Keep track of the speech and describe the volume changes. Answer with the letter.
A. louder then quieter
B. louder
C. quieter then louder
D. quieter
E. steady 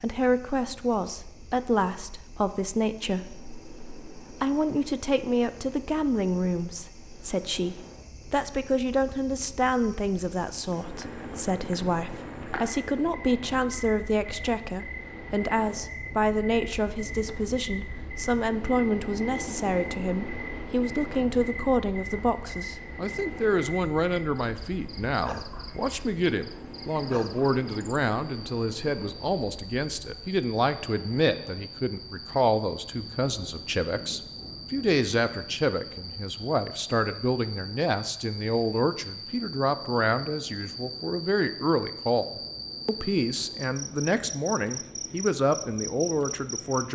E.